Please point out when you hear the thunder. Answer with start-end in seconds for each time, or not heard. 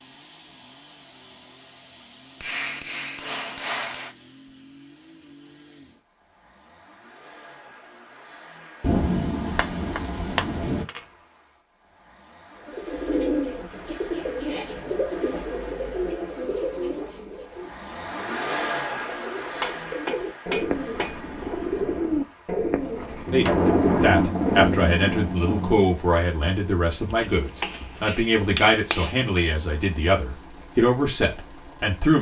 8.8-10.8, 23.2-25.9.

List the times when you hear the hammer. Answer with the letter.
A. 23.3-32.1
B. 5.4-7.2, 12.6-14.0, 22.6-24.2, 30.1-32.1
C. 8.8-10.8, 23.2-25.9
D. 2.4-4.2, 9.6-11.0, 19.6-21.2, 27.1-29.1
D.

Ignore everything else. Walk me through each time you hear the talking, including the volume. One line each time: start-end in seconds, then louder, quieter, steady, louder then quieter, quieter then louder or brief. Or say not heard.
23.3-32.1 steady.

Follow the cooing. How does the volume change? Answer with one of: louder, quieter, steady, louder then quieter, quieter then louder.
quieter then louder.